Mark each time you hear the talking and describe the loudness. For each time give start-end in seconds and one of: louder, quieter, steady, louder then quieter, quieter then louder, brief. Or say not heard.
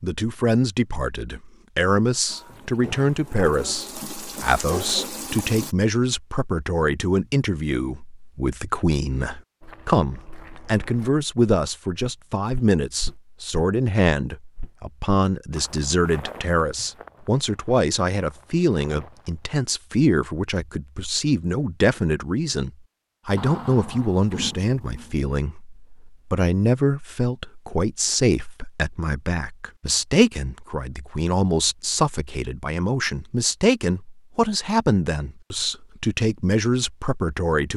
0.0-37.7 steady.